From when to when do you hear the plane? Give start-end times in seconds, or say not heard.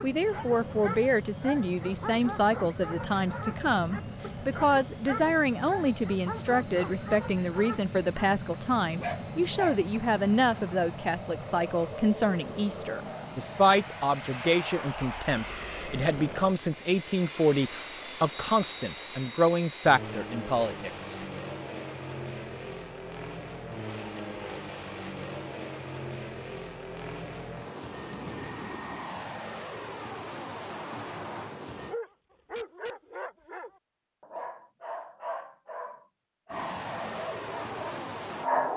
0.0-31.9, 36.5-38.7.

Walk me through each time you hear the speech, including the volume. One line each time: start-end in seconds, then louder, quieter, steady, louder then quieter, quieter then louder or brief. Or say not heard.
0.0-21.1 steady.